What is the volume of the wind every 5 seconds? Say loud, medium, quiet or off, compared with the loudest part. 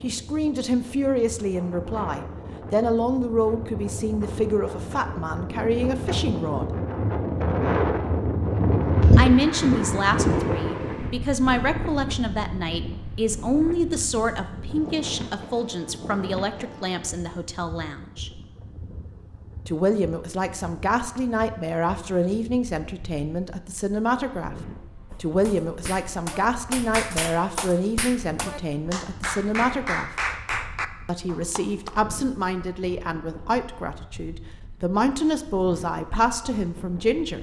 quiet, loud, medium, quiet, quiet, quiet, quiet, quiet.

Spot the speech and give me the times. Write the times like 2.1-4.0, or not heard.
0.0-6.7, 9.2-18.4, 19.6-24.6, 25.2-30.1, 31.1-37.3.